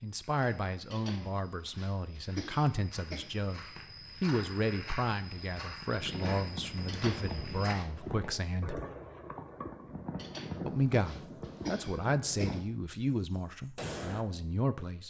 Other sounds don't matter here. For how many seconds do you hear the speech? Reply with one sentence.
You can hear the speech for 13 seconds altogether.